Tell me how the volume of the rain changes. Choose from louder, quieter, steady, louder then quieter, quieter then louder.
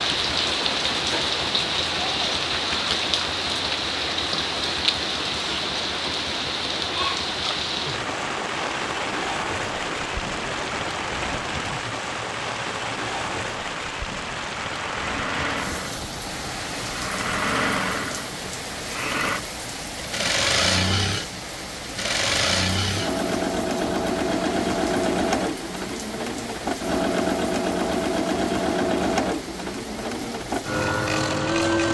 quieter.